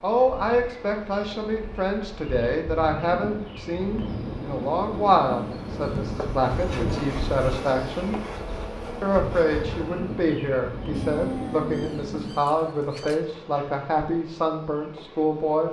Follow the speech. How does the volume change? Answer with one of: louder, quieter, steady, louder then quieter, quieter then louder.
steady.